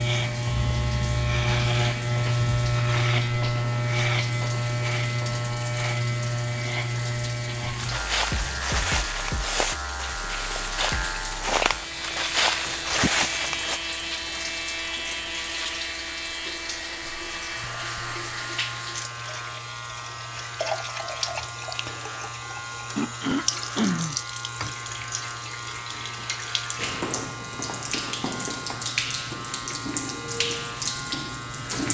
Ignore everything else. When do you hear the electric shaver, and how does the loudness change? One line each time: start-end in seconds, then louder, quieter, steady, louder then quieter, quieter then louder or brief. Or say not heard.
0.0-31.8 quieter.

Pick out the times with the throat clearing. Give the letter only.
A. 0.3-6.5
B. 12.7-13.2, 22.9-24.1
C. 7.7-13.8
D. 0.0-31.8
B.